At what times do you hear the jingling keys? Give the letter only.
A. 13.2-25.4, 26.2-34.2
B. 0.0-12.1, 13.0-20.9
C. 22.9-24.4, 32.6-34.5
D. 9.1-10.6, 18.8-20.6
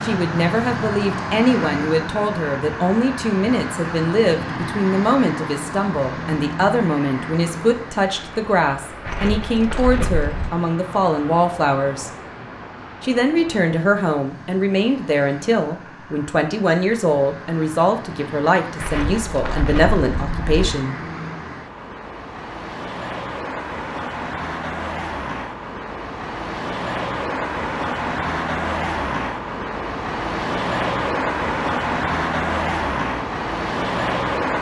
D.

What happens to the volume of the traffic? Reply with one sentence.
The volume of the traffic goes down, then up.